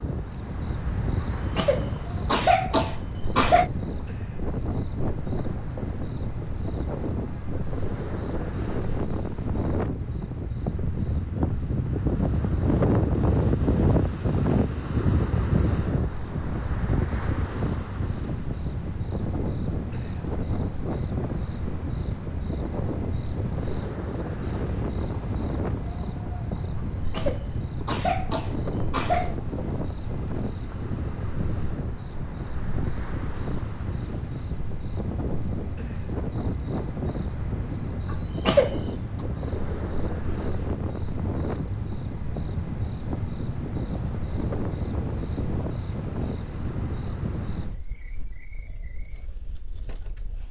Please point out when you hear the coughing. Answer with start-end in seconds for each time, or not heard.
1.6-3.7, 27.1-29.4, 38.1-38.8.